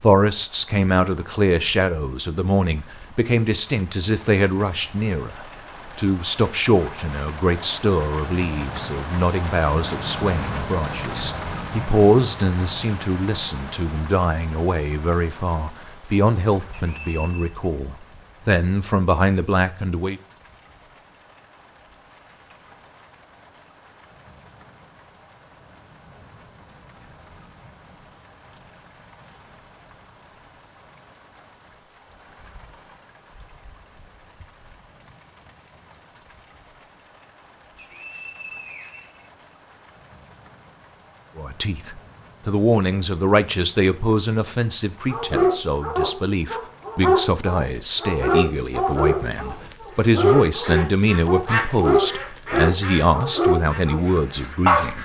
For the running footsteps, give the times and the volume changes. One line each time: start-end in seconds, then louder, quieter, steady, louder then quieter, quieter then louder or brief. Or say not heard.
not heard.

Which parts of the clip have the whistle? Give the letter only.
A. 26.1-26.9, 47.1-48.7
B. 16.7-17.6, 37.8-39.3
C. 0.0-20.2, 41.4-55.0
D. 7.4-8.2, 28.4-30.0
B.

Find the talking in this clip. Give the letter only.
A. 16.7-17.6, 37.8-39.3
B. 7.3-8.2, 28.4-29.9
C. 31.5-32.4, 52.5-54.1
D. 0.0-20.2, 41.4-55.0
D.